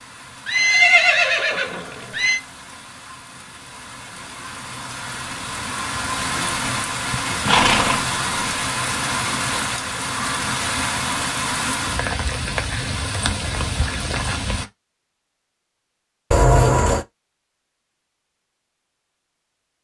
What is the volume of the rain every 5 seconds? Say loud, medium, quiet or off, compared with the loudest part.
quiet, loud, loud, off.